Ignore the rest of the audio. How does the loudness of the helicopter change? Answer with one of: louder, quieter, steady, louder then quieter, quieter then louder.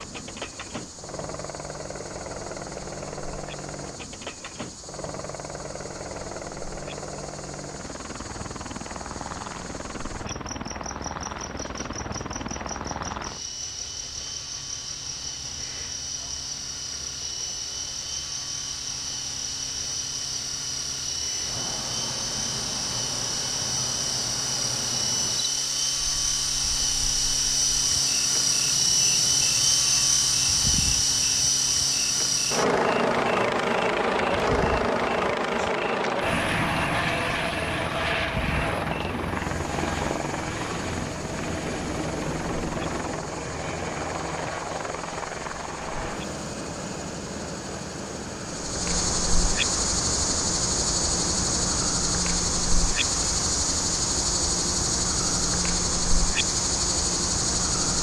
louder then quieter.